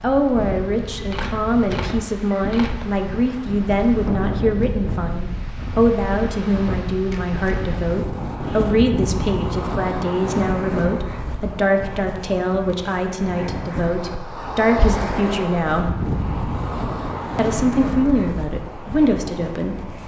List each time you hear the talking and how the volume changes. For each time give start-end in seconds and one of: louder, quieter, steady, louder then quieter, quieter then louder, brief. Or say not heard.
0.0-15.9 steady
17.4-20.0 brief.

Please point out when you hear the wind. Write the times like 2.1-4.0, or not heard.
0.0-20.0.